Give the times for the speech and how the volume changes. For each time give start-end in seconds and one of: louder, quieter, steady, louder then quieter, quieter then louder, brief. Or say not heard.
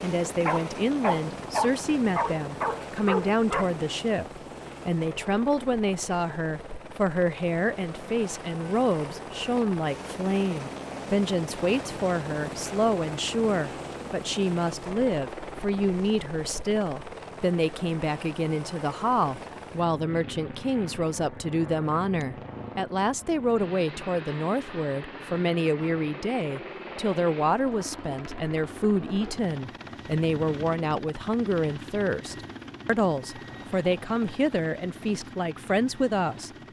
0.0-36.5 steady.